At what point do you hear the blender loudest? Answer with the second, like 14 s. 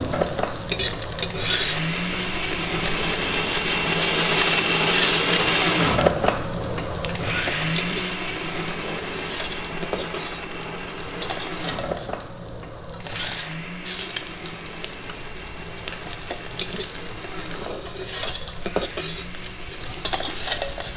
6 s.